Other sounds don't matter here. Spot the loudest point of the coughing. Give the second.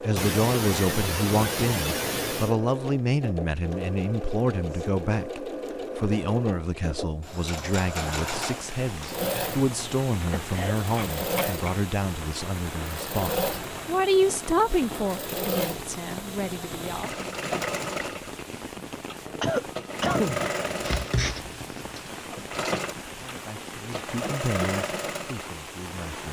20 s.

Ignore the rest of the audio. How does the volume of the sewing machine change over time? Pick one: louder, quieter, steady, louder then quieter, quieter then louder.
steady.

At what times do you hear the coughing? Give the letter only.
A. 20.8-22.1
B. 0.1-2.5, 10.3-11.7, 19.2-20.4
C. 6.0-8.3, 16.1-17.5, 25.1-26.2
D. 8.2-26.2
B.